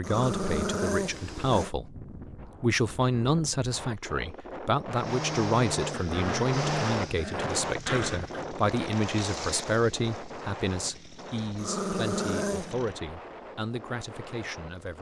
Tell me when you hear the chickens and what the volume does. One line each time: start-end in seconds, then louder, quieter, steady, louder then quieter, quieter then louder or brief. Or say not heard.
not heard.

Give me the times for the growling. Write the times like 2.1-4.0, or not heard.
0.0-1.7, 5.9-8.4, 11.6-12.7.